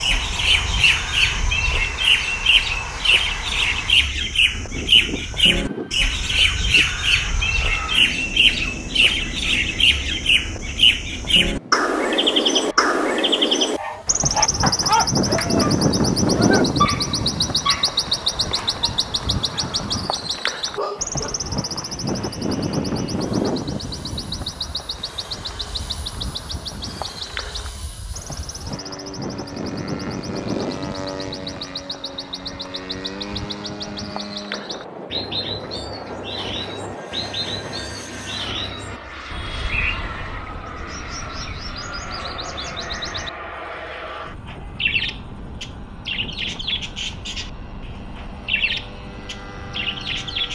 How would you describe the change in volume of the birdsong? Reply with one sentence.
The volume of the birdsong goes down.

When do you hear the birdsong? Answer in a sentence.
The birdsong can be heard from 0.0 to 50.5 s.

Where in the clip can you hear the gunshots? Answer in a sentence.
You can't hear the gunshots here.